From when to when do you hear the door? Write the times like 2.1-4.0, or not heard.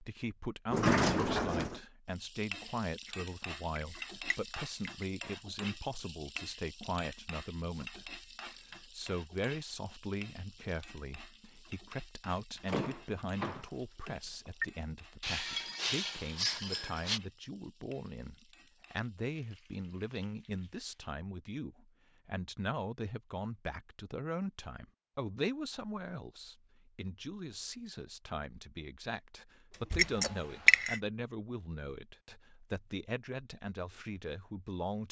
0.7-1.8, 12.7-14.7, 29.7-30.1.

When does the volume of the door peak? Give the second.
1 s.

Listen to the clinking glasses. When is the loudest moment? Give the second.
31 s.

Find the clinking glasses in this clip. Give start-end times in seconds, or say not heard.
3.0-5.0, 15.2-17.2, 29.9-31.0.